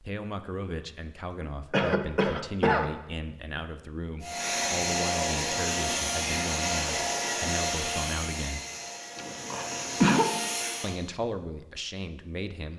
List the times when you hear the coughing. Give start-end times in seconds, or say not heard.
1.7-2.9, 9.2-10.3.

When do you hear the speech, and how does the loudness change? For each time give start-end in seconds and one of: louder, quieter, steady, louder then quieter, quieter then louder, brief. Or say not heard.
0.0-8.7 steady
10.8-12.7 brief.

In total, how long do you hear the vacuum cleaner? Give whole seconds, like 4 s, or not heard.
7 s.